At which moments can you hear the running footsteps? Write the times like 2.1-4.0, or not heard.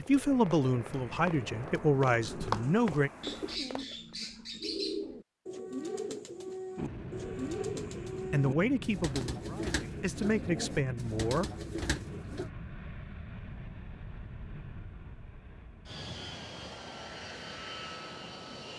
0.0-4.2.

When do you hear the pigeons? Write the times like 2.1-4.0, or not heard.
2.2-12.5.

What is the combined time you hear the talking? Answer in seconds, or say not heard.
6 s.